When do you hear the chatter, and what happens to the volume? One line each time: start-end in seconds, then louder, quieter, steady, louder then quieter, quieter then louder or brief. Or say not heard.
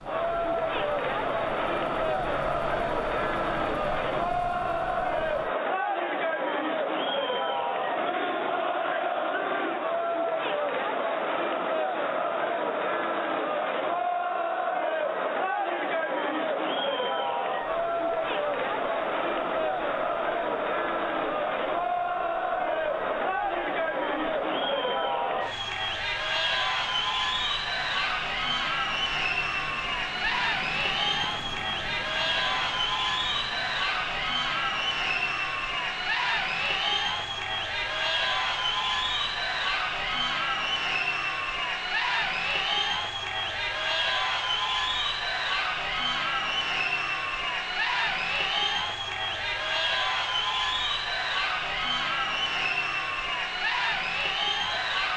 0.0-55.1 steady.